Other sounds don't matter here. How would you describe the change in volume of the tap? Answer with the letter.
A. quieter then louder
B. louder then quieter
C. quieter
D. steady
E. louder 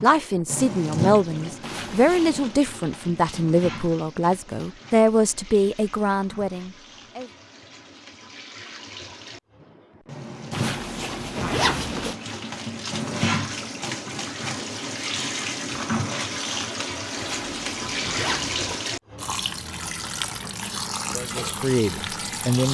A.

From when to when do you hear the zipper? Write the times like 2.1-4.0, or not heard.
1.6-2.5, 10.5-12.2, 17.1-18.8.